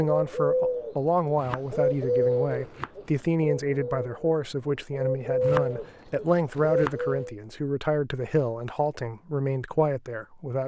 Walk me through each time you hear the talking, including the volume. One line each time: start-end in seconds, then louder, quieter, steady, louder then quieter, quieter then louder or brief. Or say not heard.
0.0-10.6 steady.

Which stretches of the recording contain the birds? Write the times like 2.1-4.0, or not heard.
0.0-7.3.